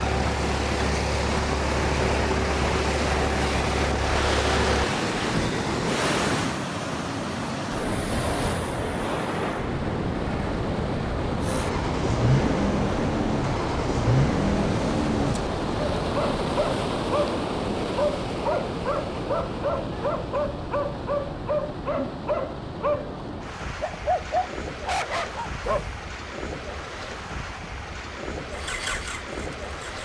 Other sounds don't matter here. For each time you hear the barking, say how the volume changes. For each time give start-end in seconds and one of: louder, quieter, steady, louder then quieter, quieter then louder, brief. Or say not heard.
15.9-26.1 steady.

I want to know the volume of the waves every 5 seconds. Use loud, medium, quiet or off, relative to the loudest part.
loud, loud, loud, loud, medium, medium.